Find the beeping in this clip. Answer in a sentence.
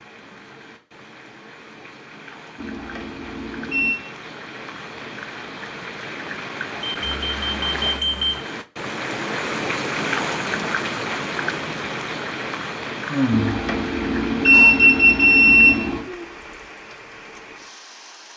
You can hear the beeping from 2.5 to 4.0 s, from 6.8 to 8.4 s and from 13.3 to 16.1 s.